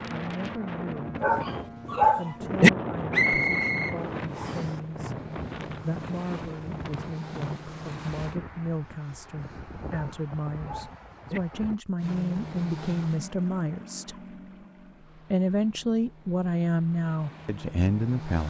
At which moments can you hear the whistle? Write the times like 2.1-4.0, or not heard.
3.1-4.8.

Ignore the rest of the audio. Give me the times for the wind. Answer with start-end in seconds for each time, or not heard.
0.0-11.8.